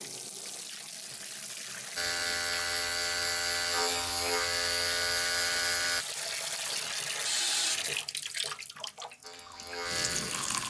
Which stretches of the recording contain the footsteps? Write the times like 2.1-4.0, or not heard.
not heard.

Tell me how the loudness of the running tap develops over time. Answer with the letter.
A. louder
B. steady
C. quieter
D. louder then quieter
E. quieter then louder
D.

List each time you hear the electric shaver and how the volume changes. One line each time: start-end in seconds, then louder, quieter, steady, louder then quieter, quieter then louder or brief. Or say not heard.
1.9-6.0 steady
9.2-10.6 brief.